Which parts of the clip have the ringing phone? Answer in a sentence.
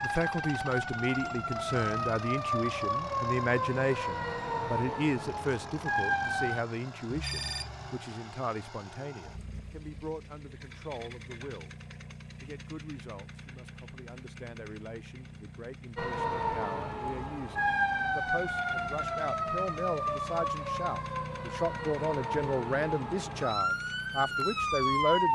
You can hear the ringing phone from 7.1 to 8.0 s.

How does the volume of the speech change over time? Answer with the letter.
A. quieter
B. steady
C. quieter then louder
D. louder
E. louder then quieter
C.